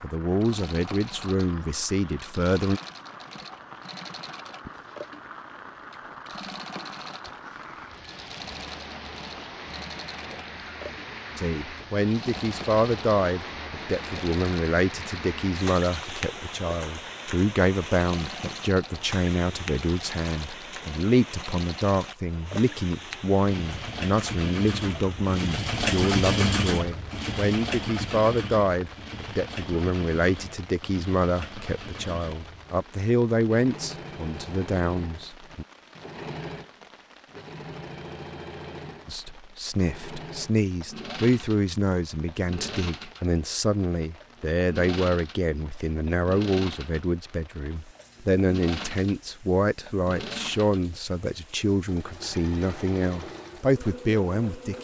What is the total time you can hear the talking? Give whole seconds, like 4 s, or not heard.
43 s.